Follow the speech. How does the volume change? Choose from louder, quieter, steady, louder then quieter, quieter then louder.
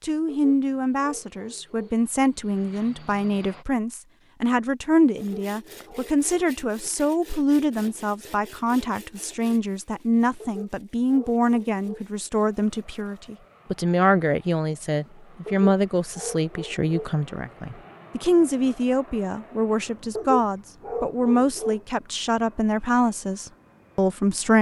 steady.